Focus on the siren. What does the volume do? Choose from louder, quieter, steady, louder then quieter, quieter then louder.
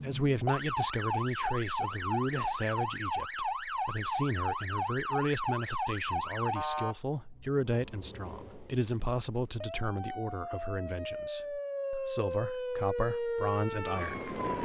quieter then louder.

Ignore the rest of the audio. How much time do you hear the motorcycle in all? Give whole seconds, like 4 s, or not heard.
not heard.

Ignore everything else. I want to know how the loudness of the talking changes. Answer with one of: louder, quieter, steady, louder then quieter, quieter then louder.
steady.